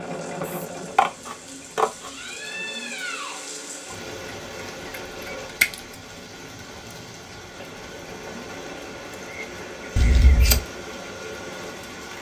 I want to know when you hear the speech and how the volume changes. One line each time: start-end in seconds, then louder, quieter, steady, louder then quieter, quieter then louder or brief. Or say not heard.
not heard.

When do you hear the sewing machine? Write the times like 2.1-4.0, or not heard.
0.0-11.8.